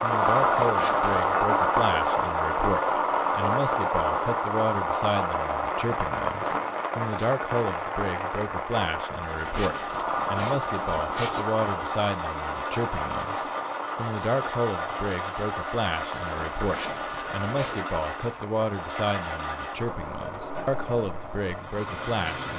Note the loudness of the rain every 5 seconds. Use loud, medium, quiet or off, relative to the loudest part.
loud, medium, medium, quiet, quiet.